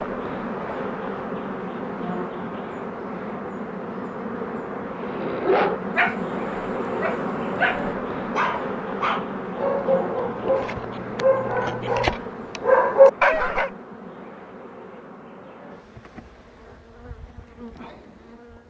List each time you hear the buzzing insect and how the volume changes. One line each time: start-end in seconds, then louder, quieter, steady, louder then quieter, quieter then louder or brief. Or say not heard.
0.0-18.6 quieter.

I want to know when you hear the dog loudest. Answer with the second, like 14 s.
13 s.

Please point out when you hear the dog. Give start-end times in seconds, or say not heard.
5.0-13.7.